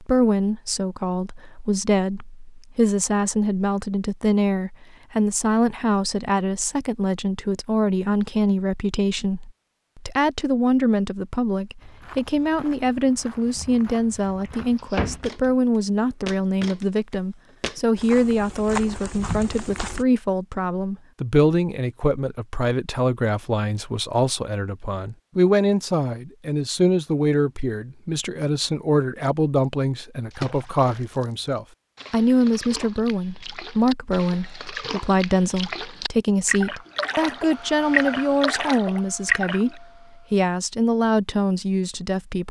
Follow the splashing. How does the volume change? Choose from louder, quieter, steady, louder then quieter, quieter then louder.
louder.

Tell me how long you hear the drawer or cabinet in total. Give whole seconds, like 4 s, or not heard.
2 s.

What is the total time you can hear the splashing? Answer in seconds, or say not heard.
9 s.